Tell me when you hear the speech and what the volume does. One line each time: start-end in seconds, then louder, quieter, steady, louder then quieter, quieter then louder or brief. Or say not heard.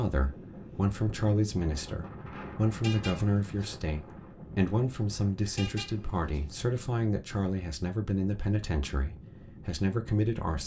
0.0-10.6 steady.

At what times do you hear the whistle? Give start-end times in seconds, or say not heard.
not heard.